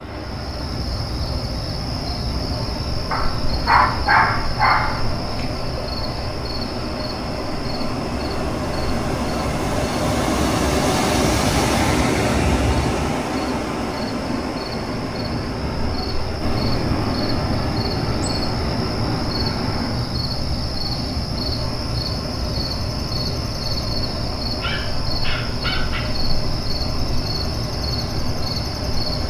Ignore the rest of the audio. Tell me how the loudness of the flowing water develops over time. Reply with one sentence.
The loudness of the flowing water goes up, then down.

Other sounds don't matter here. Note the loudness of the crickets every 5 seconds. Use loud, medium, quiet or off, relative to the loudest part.
loud, medium, medium, loud, loud, loud.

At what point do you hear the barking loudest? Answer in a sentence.
The loudest moment of the barking is at 4 seconds.